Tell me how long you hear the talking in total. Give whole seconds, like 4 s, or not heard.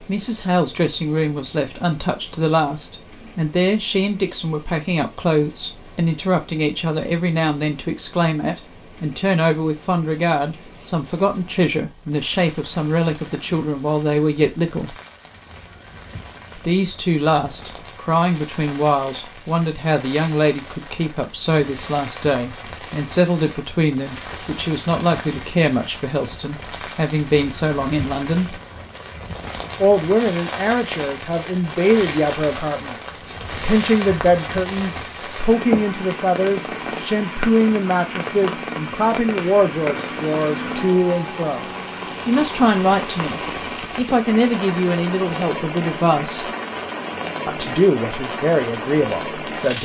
45 s.